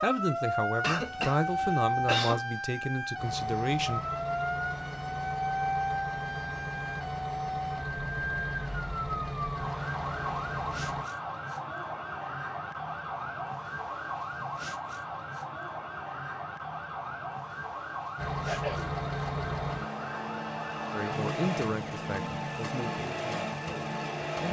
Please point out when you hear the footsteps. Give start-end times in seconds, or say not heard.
not heard.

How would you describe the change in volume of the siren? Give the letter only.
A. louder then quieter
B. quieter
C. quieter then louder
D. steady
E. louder
B.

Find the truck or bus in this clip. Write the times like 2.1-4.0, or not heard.
3.1-11.1, 18.1-24.4.